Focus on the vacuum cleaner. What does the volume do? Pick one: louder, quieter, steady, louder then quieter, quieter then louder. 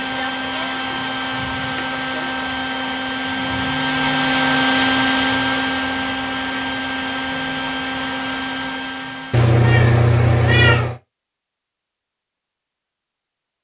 louder then quieter.